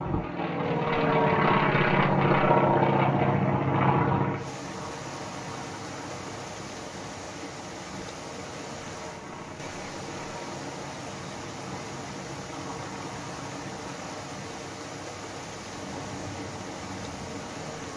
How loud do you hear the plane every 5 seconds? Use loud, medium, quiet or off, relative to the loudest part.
loud, quiet, quiet, quiet.